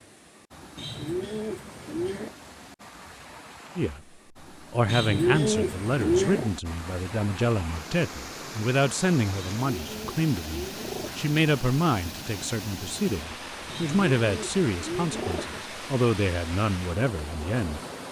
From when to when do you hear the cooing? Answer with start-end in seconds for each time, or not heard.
0.8-2.4, 4.8-6.5, 9.3-11.3, 13.7-15.7.